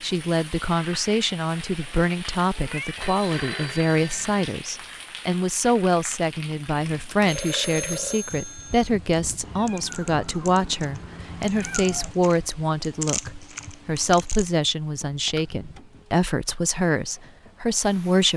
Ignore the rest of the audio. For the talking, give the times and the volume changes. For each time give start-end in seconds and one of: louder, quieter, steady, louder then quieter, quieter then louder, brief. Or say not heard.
0.0-18.3 steady.